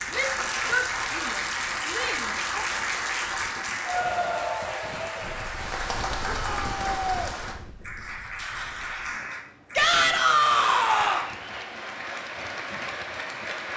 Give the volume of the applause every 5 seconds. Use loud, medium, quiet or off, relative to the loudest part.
loud, medium, medium.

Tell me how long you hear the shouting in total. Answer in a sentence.
The shouting can be heard for 5 seconds in total.